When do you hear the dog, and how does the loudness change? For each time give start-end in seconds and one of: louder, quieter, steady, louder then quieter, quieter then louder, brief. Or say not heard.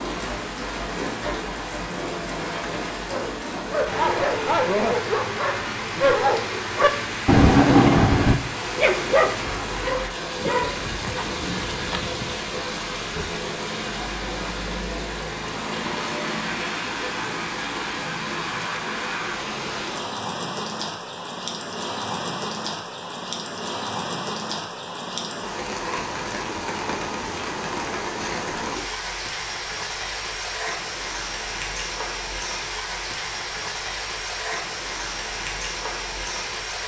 3.0-12.6 louder then quieter.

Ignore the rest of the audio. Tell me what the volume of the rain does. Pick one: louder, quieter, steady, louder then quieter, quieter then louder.
steady.